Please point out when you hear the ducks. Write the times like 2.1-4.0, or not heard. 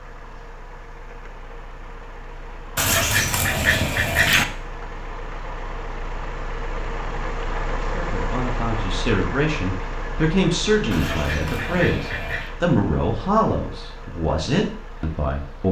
2.8-4.5, 10.9-12.5.